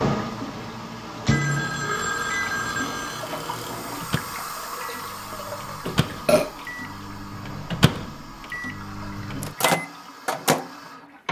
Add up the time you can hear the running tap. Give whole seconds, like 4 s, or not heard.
11 s.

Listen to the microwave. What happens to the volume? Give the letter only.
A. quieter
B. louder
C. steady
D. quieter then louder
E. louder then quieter
D.